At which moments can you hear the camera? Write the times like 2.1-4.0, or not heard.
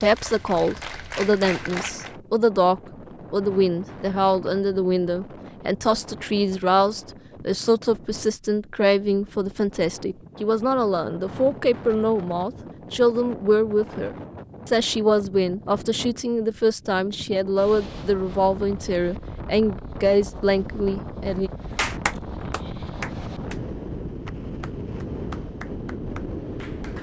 not heard.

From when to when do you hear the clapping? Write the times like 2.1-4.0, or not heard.
0.0-2.1, 21.8-23.6, 24.2-26.9.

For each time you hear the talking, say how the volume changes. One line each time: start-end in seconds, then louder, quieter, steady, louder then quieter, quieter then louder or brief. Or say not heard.
0.0-21.5 steady.